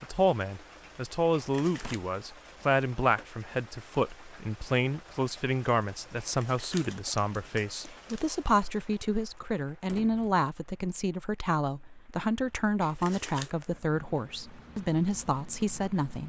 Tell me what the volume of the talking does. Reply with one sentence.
The loudness of the talking stays about the same.